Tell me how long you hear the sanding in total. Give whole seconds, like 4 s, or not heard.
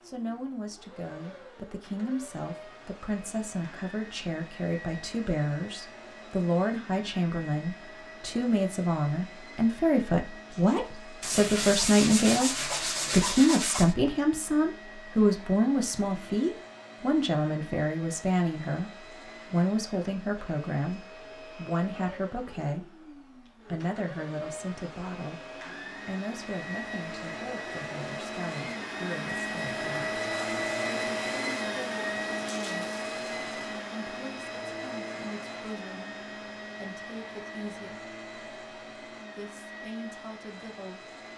3 s.